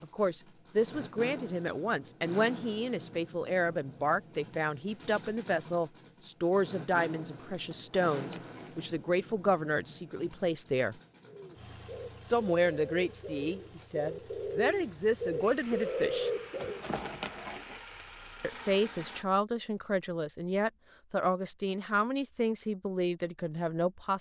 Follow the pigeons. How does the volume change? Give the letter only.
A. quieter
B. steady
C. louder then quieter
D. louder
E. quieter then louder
D.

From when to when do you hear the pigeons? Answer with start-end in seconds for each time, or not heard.
11.2-16.9.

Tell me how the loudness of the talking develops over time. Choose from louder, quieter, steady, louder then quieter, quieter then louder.
steady.